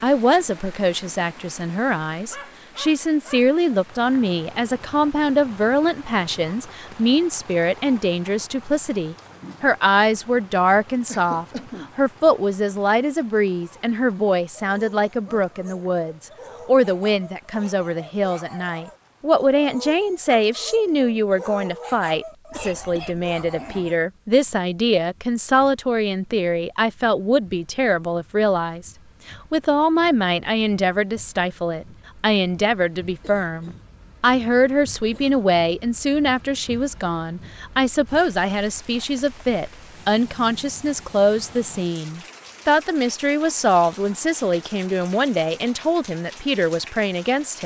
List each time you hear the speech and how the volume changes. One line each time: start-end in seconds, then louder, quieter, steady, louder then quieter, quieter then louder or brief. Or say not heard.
0.0-47.6 steady.